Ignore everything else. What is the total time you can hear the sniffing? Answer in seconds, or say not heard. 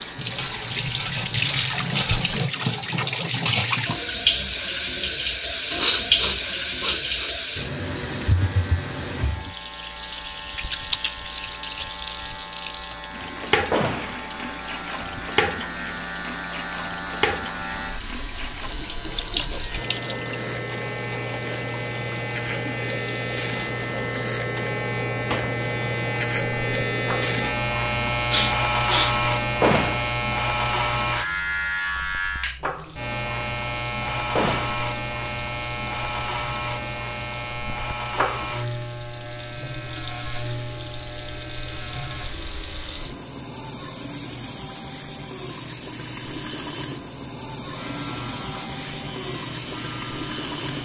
3 s.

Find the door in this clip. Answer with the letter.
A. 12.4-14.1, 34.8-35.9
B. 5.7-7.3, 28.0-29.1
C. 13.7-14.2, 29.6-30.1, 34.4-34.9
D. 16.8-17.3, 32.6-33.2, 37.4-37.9
C.